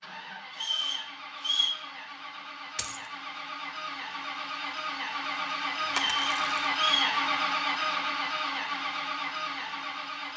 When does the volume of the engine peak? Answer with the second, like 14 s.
7 s.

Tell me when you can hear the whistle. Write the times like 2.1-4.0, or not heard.
0.5-1.8, 5.8-7.2.